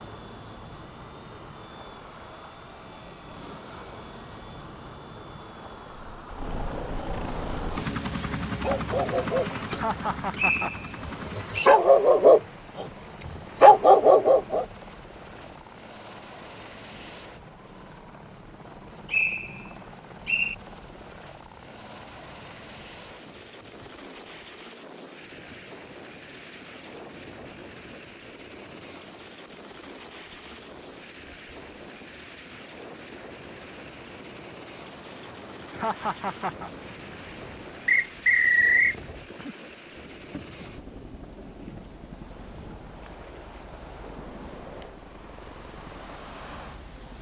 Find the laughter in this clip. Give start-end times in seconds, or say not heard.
9.7-10.7, 35.7-36.7.